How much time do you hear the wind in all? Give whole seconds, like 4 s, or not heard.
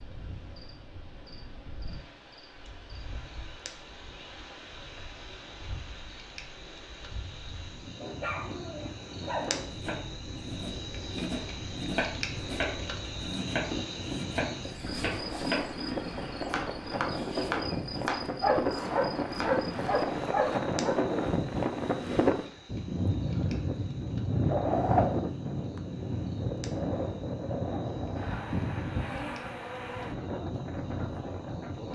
32 s.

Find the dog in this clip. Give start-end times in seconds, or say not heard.
8.0-9.7, 18.4-20.9.